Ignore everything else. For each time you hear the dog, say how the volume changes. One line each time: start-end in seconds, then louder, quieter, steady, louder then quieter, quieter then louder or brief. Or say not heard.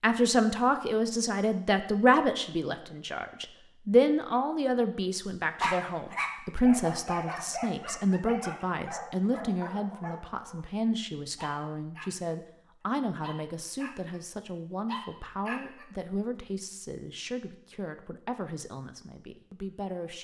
5.6-10.7 quieter
11.3-12.3 brief
13.2-14.2 brief
14.8-15.8 brief.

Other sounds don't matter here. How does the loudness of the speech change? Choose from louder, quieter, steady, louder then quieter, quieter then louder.
quieter.